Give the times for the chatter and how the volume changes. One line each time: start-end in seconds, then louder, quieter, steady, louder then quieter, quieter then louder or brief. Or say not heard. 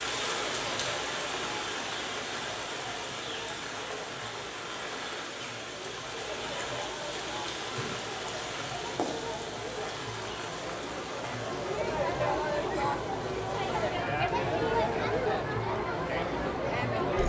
0.0-17.2 louder.